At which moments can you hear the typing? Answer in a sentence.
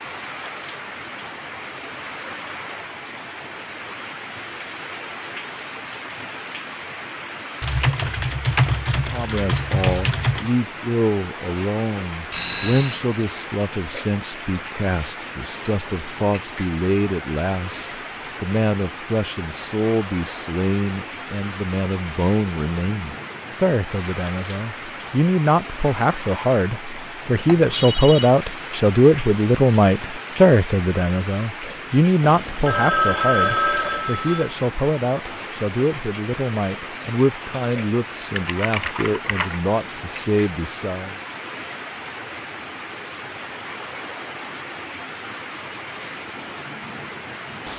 The typing can be heard from 7.6 to 10.5 s and from 38.4 to 39.6 s.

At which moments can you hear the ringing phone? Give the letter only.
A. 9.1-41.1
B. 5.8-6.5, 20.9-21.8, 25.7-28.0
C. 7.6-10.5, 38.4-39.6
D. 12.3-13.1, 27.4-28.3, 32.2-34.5
D.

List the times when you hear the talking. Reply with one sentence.
You can hear the talking from 9.1 to 41.1 s.